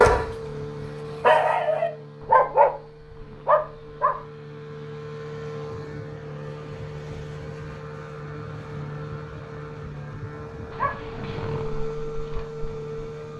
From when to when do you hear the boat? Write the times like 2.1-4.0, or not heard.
0.1-13.3.